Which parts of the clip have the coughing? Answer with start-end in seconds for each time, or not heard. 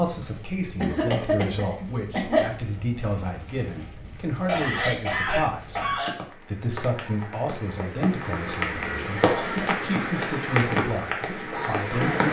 0.8-2.5, 4.5-6.1, 9.2-9.7.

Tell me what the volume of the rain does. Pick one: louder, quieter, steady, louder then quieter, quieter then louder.
louder.